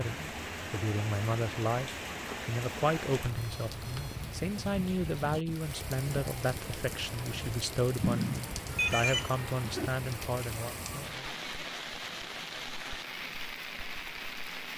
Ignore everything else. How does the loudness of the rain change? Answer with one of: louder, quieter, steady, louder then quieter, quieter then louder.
steady.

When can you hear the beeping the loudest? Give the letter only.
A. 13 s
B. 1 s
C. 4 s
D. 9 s
D.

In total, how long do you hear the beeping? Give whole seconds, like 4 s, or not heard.
3 s.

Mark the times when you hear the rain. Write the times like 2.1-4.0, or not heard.
0.0-14.7.